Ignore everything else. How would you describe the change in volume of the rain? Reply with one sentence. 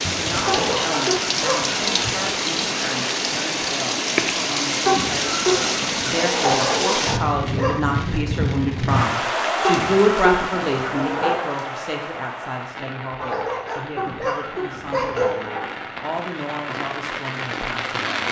The volume of the rain goes down.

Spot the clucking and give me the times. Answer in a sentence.
The clucking can be heard from 0.5 to 2.1 s, from 4.8 to 6.7 s, from 9.6 to 11.5 s and from 13.9 to 15.7 s.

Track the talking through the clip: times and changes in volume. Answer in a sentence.
The talking can be heard from 0.1 to 18.2 s, getting louder then quieter.